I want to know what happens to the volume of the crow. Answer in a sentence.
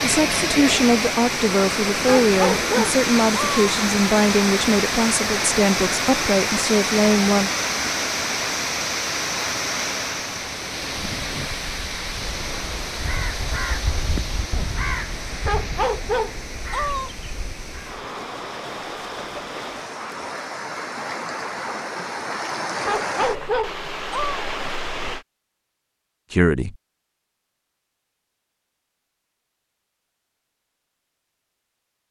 The volume of the crow goes up, then down.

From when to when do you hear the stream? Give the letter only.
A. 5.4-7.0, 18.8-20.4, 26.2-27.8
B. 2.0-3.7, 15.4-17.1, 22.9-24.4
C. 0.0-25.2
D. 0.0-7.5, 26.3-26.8
C.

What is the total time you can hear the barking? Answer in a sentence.
The barking can be heard for 5 seconds in total.